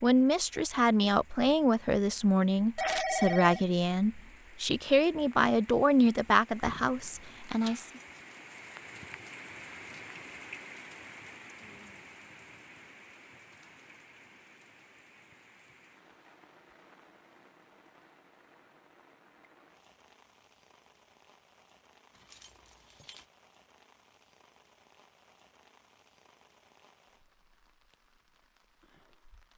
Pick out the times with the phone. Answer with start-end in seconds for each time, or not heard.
2.8-3.6.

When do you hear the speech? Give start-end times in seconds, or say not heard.
0.0-7.9.